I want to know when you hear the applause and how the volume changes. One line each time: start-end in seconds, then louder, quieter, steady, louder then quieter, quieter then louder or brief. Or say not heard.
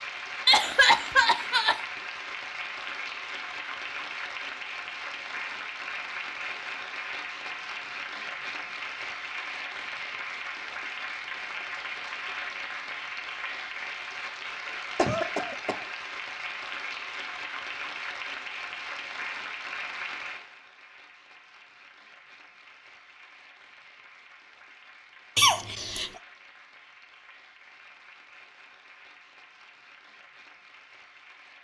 0.0-31.5 quieter.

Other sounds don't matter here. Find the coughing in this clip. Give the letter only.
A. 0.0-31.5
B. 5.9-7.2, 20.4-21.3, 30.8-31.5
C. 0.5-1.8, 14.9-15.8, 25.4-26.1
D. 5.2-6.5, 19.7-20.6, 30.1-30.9
C.